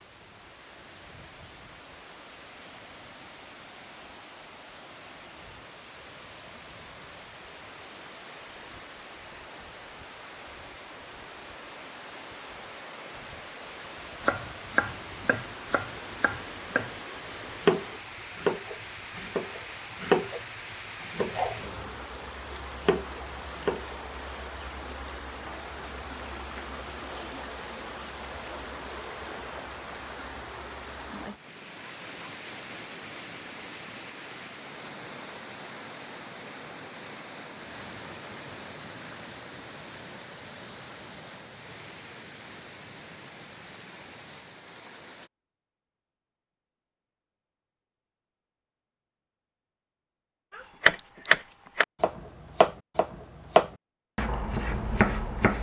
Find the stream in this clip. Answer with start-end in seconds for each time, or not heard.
0.0-45.3.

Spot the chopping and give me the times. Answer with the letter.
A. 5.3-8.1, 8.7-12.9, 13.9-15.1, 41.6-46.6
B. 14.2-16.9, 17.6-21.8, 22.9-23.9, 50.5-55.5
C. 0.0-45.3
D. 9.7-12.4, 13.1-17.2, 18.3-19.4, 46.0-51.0
B.